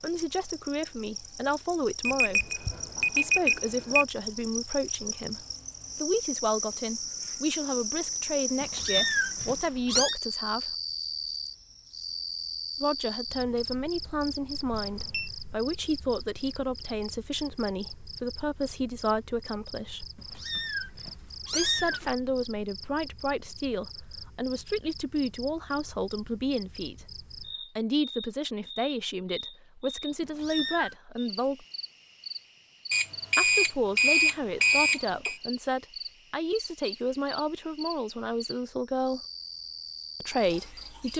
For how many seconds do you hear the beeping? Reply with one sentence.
The beeping can be heard for 5 seconds in total.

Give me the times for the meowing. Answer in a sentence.
The meowing can be heard from 8.6 to 10.2 s, from 20.1 to 22.1 s and from 30.2 to 30.9 s.